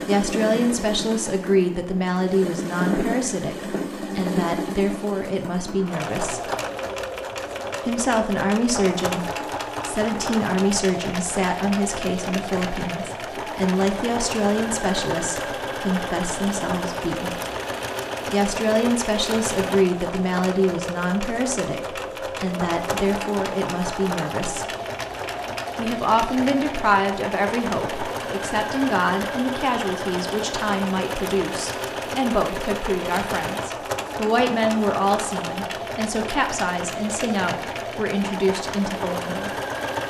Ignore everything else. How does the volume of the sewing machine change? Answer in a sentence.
The loudness of the sewing machine stays about the same.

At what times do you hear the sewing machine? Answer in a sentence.
You can hear the sewing machine from 0.0 to 40.0 s.